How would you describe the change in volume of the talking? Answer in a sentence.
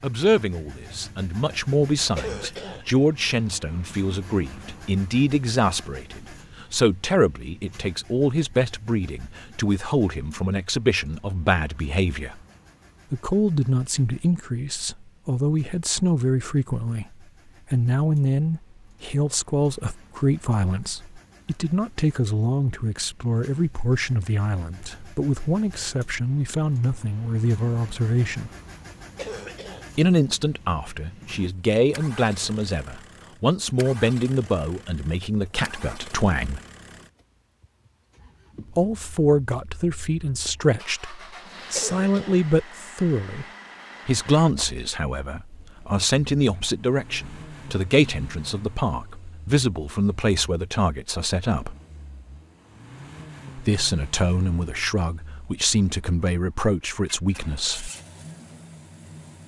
The volume of the talking stays about the same.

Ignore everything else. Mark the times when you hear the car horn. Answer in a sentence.
You can't hear the car horn here.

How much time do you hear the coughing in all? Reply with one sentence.
The coughing can be heard for 2 seconds in total.